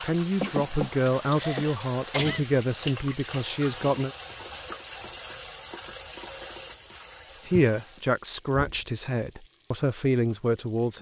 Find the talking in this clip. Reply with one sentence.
You can hear the talking from 0.0 to 4.1 s and from 7.5 to 10.9 s.